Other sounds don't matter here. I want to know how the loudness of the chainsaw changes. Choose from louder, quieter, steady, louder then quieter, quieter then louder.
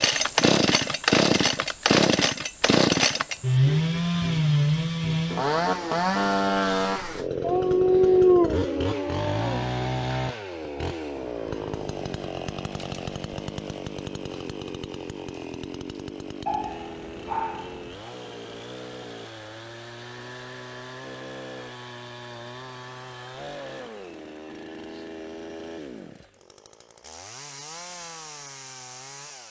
quieter.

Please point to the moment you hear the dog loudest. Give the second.
8 s.